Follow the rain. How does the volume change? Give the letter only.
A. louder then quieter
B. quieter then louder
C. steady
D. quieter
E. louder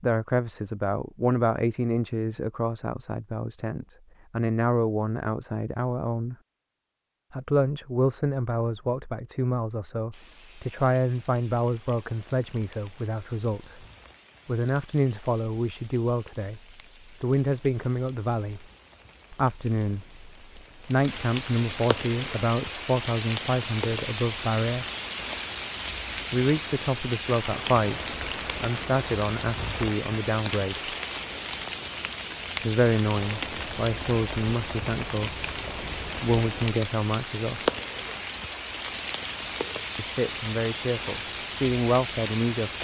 E.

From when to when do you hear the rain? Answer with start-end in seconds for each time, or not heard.
10.1-42.7.